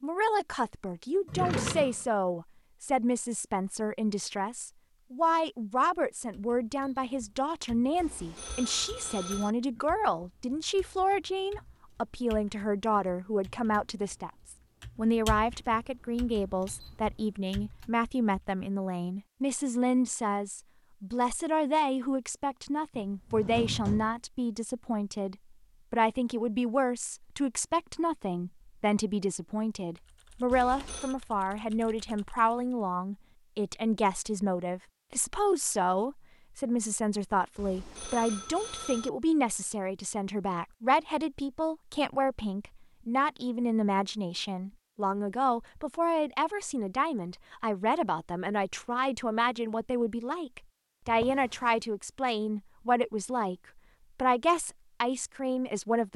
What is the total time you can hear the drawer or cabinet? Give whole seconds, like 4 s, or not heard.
3 s.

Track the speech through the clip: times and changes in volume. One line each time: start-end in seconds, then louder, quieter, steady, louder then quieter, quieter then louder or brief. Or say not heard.
0.0-53.5 steady
54.1-56.1 brief.